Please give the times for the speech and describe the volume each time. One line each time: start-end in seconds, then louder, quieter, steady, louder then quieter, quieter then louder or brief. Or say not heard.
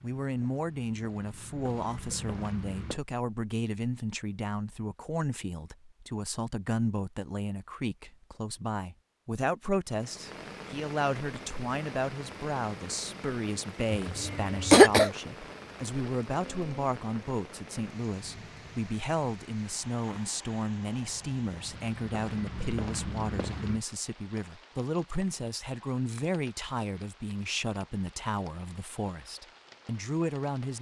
0.0-30.7 steady.